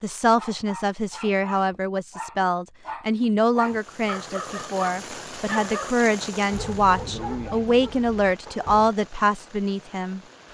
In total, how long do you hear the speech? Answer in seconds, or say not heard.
10 s.